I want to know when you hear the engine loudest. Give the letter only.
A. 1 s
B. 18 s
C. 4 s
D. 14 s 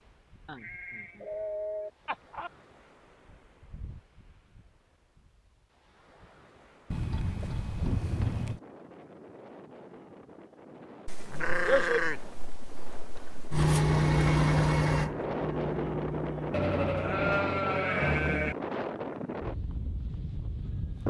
D.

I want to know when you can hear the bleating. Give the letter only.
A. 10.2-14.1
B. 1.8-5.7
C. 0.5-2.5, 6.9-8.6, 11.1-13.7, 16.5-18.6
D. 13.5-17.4
C.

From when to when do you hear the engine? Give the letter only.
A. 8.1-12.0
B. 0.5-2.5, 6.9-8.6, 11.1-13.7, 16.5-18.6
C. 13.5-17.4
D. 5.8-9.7
C.